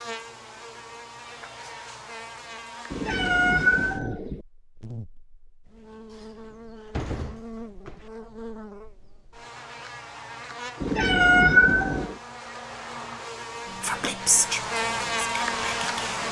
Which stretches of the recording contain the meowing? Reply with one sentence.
You can hear the meowing from 2.9 to 4.4 s and from 10.8 to 12.2 s.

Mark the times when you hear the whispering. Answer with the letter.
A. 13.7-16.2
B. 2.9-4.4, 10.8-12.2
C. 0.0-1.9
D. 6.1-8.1
A.